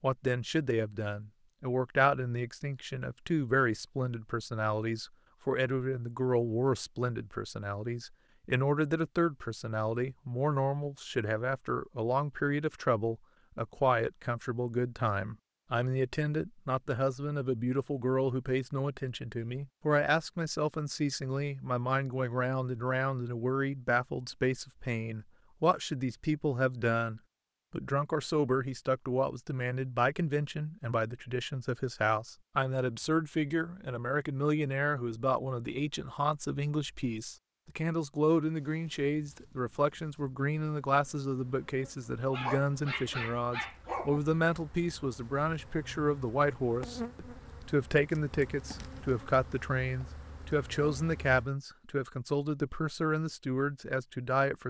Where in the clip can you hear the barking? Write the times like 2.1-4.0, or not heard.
42.3-44.2.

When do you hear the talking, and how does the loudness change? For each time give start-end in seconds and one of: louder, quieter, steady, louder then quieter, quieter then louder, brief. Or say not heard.
0.0-54.6 steady.